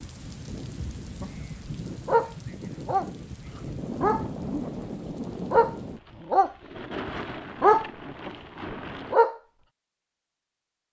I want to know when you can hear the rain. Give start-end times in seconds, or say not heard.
0.0-9.2.